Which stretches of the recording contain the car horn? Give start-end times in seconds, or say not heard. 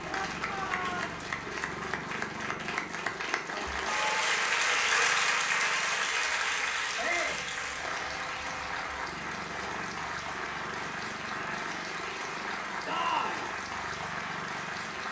not heard.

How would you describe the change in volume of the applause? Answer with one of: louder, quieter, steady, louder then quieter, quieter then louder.
louder then quieter.